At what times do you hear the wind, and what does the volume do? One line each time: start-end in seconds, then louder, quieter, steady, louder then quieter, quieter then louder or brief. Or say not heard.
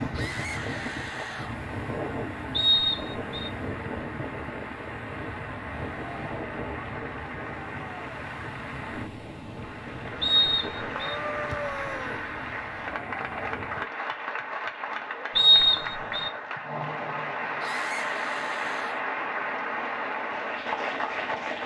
0.0-13.9 quieter.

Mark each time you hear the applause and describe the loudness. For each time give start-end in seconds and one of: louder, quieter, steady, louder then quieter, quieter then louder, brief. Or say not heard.
0.0-21.6 louder.